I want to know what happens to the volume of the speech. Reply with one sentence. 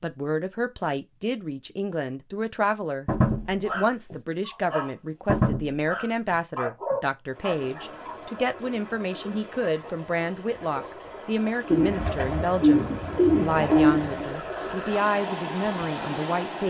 The loudness of the speech stays about the same.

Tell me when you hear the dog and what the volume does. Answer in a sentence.
You can hear the dog from 3.0 to 8.5 s, getting louder then quieter.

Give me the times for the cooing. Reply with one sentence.
You can hear the cooing from 11.7 to 14.3 s.